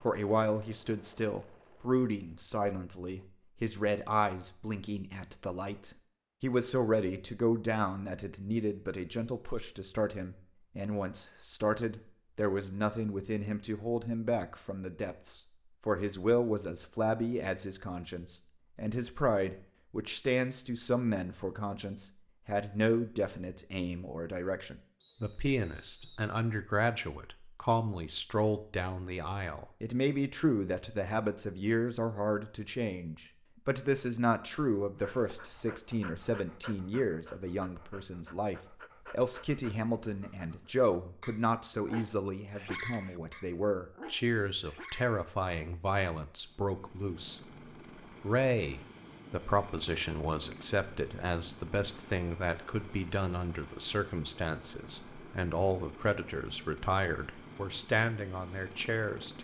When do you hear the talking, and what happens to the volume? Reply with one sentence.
You can hear the talking from 0.0 to 47.4 s, at a steady volume; and from 48.2 to 59.3 s, at a steady volume.